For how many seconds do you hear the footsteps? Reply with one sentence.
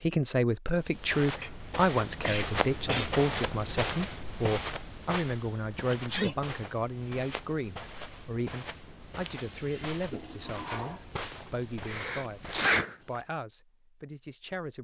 You can hear the footsteps for 12 seconds altogether.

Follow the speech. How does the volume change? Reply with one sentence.
The loudness of the speech goes down.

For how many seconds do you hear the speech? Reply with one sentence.
The speech can be heard for 15 seconds in total.